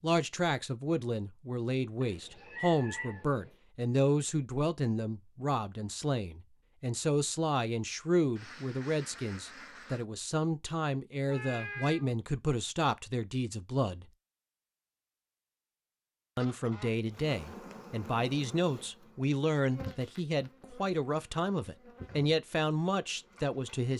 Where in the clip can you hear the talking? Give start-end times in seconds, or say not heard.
0.0-14.1, 16.4-23.9.